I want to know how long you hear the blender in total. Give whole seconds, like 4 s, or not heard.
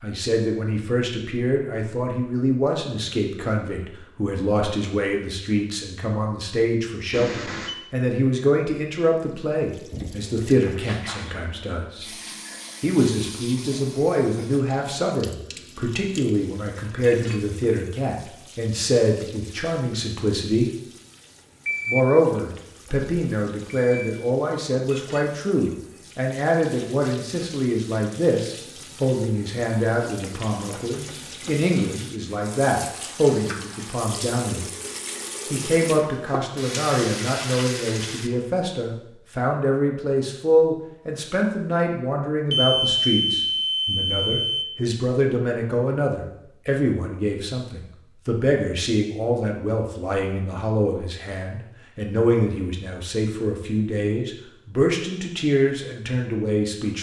not heard.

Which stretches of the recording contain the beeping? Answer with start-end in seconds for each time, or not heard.
7.1-7.8, 21.6-22.1, 23.7-24.1, 42.5-44.6.